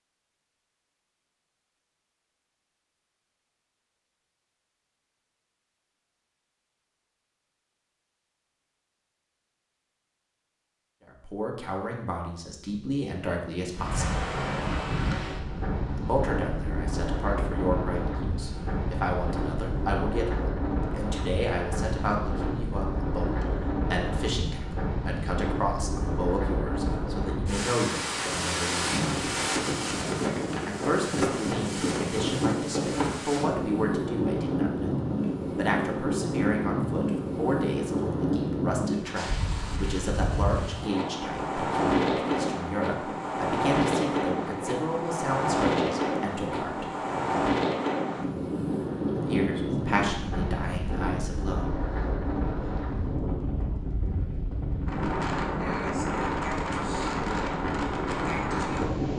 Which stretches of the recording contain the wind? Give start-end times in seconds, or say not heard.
13.7-59.1.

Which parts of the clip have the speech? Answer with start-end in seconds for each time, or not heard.
11.1-14.3, 15.9-29.4, 30.6-46.9, 49.2-51.7.